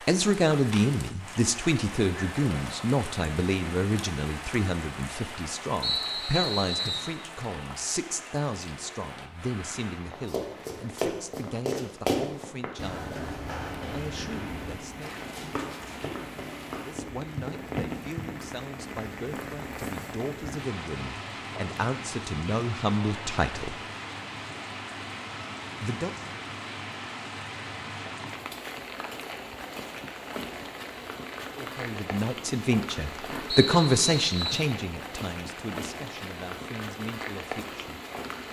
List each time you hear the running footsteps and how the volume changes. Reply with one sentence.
The running footsteps can be heard from 10.2 to 18.2 s, getting quieter.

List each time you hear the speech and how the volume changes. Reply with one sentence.
You can hear the speech from 0.1 to 13.2 s, getting quieter; briefly from 13.9 to 15.2 s; from 16.8 to 23.8 s, getting louder; briefly from 25.8 to 26.4 s; and from 31.6 to 38.0 s, getting louder then quieter.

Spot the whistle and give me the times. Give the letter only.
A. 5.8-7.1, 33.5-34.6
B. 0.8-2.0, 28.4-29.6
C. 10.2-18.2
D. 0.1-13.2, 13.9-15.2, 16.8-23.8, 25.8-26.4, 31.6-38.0
A.